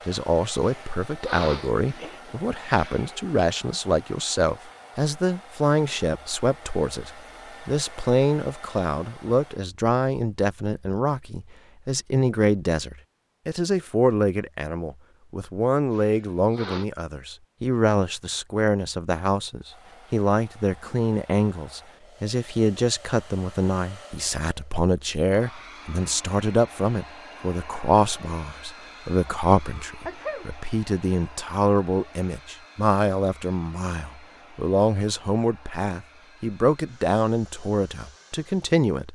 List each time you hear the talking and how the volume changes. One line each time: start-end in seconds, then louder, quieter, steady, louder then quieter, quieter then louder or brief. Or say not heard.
0.1-39.0 steady.